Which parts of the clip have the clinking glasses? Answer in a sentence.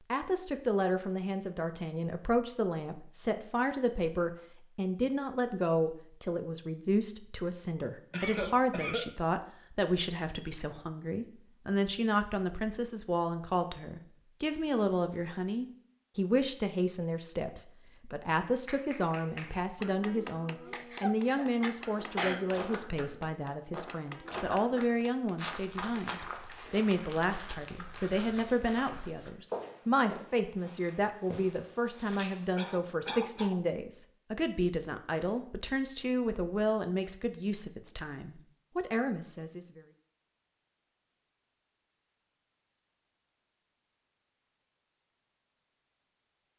You can't hear the clinking glasses here.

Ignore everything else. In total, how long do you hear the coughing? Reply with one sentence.
The coughing can be heard for 4 seconds in total.